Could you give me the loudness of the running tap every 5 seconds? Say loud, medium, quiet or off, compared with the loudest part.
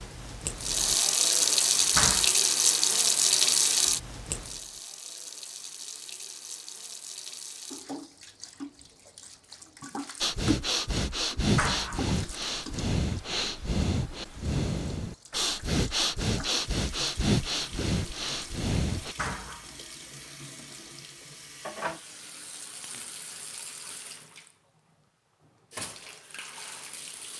loud, quiet, quiet, quiet, quiet, quiet.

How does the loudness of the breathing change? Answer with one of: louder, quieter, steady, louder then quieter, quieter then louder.
steady.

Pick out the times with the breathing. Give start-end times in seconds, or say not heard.
10.2-19.1.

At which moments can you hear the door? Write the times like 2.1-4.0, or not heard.
1.9-2.4, 11.6-12.2, 19.1-19.8.